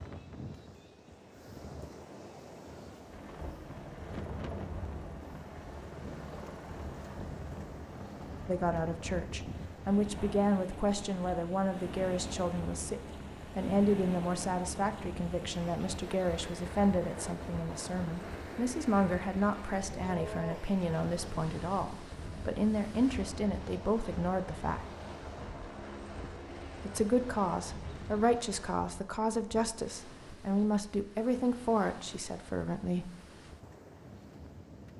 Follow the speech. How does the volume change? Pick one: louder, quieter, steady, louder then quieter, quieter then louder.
steady.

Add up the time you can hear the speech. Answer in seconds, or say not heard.
23 s.